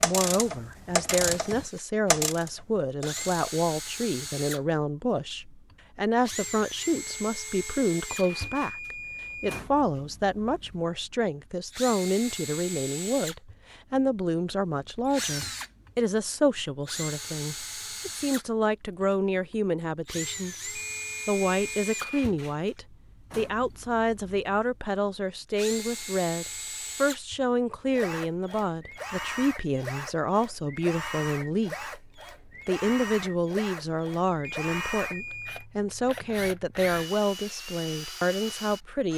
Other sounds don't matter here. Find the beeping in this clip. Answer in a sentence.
You can hear the beeping from 8.2 to 9.6 s, from 20.8 to 22.2 s and from 34.6 to 35.6 s.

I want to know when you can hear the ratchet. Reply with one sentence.
You can hear the ratchet from 0.0 to 3.5 s.